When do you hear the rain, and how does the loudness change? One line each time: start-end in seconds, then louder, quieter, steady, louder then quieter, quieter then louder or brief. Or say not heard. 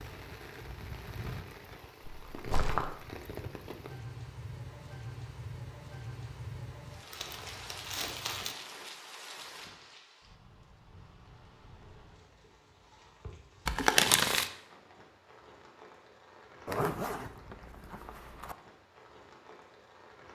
0.0-20.2 quieter.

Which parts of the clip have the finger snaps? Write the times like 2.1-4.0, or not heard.
not heard.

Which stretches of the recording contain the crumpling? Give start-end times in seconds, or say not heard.
2.0-2.9, 7.1-8.6, 13.7-14.4.